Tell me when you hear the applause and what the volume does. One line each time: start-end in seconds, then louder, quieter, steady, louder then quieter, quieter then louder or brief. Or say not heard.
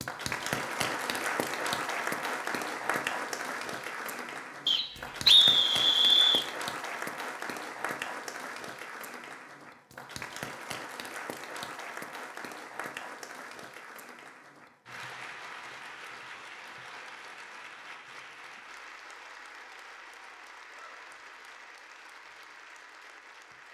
0.0-23.7 quieter.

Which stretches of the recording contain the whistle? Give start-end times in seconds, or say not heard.
4.7-6.5.